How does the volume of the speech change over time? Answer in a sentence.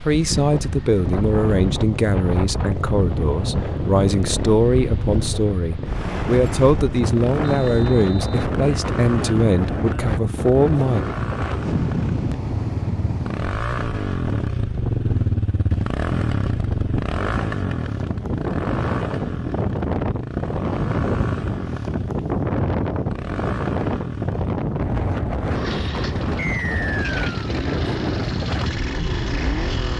The volume of the speech stays about the same.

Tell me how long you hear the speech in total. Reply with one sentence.
You can hear the speech for 11 seconds altogether.